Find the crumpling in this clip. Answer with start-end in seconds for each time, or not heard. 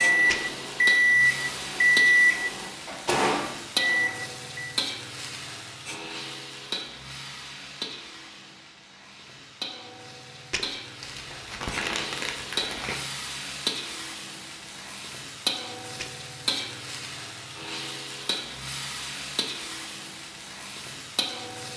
11.0-13.0.